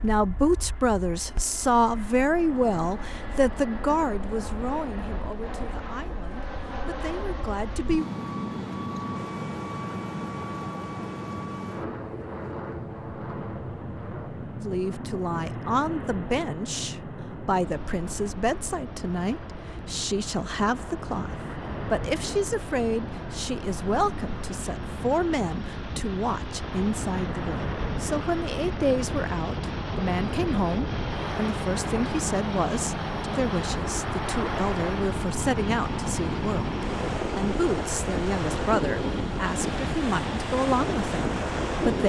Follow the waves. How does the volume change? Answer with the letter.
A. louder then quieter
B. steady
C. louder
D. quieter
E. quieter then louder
C.